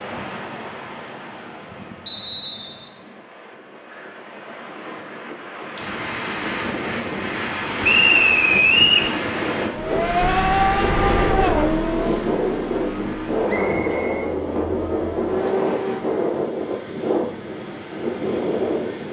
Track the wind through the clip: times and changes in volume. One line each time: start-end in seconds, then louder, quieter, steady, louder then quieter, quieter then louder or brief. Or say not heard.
0.0-19.0 louder.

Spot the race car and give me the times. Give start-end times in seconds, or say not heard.
9.7-16.2.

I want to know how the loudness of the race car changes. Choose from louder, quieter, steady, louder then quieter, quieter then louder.
quieter.